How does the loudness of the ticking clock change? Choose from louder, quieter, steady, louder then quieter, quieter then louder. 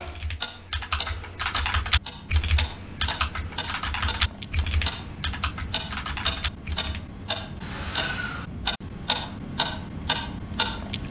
louder.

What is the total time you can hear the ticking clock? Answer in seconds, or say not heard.
11 s.